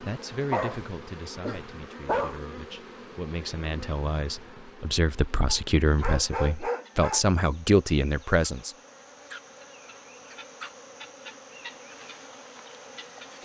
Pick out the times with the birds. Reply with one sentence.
The birds can't be heard in this clip.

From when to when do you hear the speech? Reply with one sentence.
You can hear the speech from 0.0 to 8.8 s.